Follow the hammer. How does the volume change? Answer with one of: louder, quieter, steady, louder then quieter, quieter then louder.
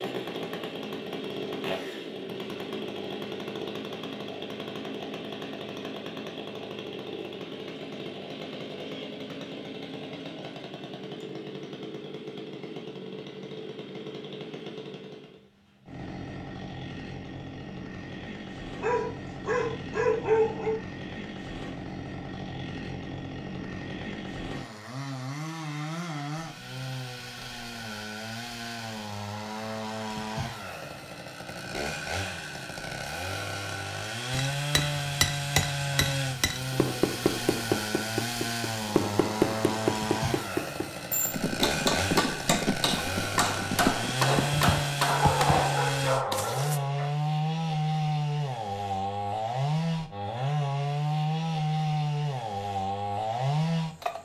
steady.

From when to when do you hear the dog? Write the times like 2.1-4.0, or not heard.
18.8-20.8, 45.0-47.0.